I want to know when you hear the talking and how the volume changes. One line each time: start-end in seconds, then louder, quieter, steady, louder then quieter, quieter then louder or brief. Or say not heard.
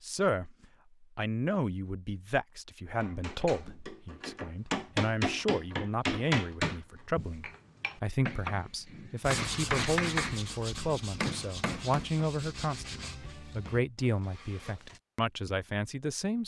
0.0-16.4 steady.